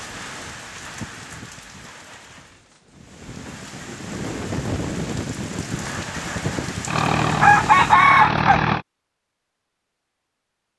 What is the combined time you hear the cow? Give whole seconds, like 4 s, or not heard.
not heard.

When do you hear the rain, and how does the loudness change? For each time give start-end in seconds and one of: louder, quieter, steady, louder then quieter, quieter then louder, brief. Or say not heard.
0.0-8.0 quieter then louder.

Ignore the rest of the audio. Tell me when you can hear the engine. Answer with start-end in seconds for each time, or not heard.
6.8-8.8.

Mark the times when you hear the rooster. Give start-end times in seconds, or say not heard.
7.4-8.7.